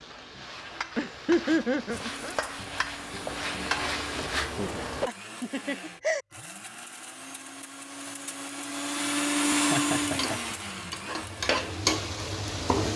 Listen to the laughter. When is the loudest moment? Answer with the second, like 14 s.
1 s.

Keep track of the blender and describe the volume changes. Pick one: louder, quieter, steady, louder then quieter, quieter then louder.
louder then quieter.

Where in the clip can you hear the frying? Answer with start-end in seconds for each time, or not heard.
0.0-5.1, 9.8-12.9.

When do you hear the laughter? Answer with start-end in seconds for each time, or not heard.
0.9-2.4, 5.0-6.2, 9.7-10.6.